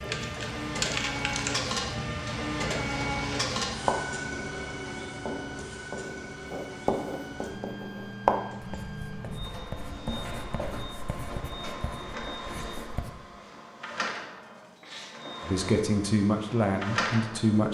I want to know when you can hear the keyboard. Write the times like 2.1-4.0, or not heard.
0.0-1.7.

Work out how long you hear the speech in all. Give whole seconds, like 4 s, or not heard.
2 s.